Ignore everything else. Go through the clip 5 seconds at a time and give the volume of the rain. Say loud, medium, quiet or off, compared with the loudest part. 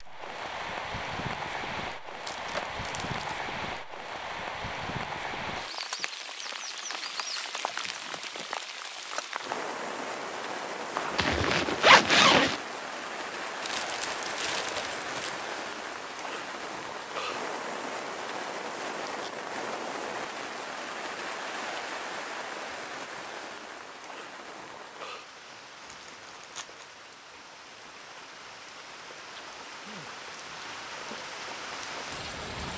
loud, loud, loud, loud, loud, medium, loud.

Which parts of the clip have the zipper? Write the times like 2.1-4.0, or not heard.
10.9-12.6.